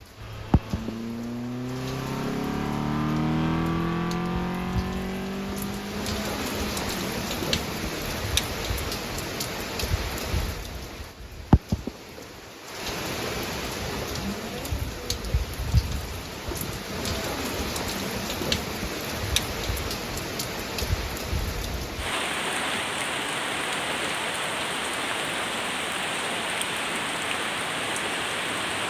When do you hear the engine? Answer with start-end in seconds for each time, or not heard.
0.0-8.2.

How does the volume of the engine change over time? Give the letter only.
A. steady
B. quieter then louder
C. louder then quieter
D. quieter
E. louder
C.